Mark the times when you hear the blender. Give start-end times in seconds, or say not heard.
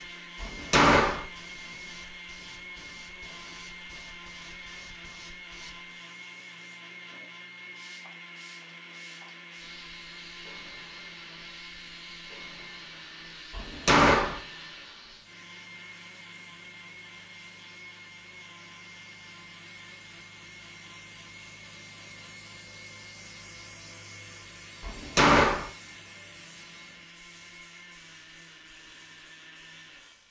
0.0-30.2.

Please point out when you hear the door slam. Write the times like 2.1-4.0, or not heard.
0.4-1.2, 13.5-14.4, 24.8-25.7.